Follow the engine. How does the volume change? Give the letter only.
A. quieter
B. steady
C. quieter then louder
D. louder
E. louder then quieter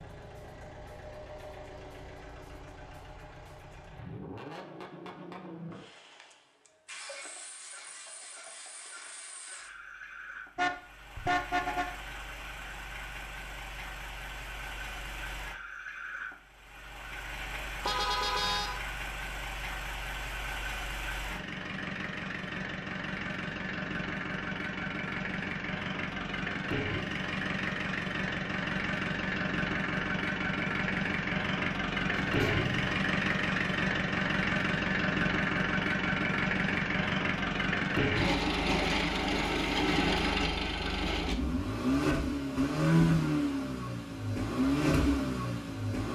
D.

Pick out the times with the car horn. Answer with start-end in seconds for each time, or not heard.
10.6-11.9, 17.9-18.8, 32.1-33.0.